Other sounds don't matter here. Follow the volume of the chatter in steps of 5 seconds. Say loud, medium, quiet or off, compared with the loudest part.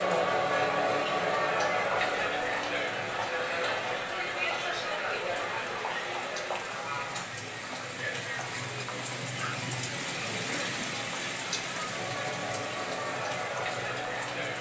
loud, medium, medium.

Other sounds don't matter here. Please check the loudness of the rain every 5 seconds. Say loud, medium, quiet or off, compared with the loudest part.
medium, loud, loud.